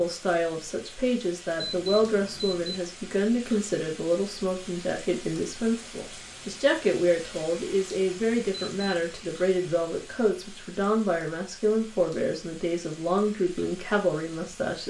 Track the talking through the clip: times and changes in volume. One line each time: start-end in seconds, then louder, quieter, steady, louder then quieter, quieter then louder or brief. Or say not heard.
0.0-14.8 steady.